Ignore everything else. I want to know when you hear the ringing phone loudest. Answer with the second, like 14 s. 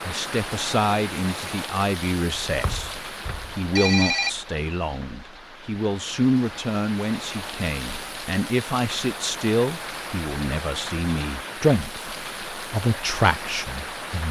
4 s.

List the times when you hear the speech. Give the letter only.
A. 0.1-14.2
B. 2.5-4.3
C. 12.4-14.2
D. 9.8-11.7
A.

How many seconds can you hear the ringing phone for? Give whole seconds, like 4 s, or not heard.
2 s.